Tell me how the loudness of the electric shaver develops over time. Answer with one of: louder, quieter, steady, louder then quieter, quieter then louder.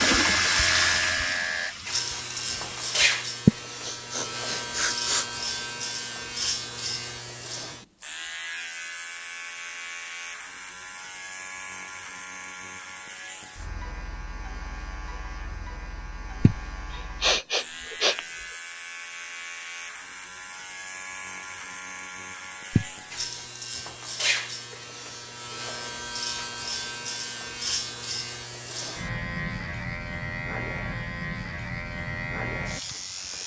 quieter then louder.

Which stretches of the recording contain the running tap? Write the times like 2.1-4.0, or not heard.
0.0-3.0.